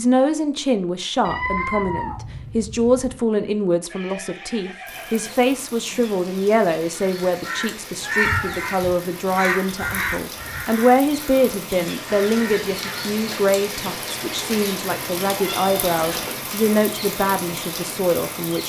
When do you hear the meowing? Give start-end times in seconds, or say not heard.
1.2-3.2, 8.0-8.5, 15.3-16.4.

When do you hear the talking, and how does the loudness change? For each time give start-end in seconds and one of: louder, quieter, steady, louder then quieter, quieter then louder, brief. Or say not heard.
0.0-18.6 steady.